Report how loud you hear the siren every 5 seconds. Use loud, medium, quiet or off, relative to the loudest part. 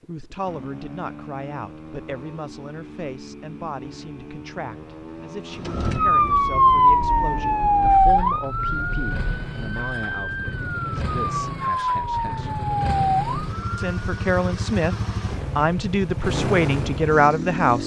off, loud, medium, off.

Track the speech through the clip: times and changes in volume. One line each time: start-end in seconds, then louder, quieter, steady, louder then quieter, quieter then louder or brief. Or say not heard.
0.1-12.5 steady
13.8-14.9 brief
15.6-17.8 brief.